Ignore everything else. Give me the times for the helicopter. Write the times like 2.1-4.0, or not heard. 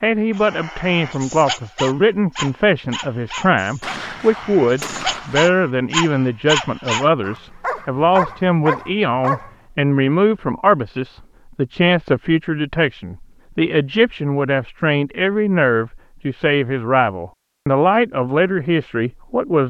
not heard.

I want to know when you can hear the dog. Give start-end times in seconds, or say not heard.
0.3-9.5.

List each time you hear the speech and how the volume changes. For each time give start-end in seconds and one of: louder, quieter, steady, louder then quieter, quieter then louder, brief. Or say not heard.
0.0-19.6 steady.